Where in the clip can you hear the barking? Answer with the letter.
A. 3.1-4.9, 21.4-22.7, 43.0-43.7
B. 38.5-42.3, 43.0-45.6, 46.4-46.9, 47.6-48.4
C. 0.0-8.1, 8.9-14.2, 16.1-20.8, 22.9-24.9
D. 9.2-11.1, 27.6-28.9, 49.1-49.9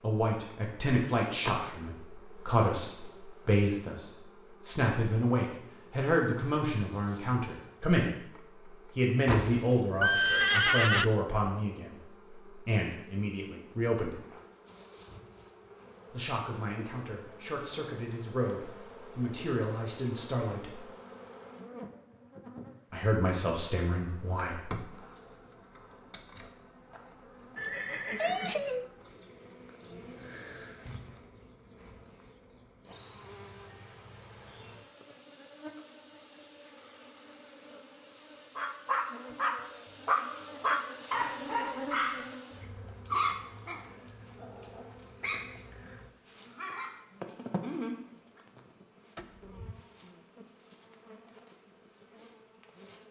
B.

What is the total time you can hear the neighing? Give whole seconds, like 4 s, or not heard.
4 s.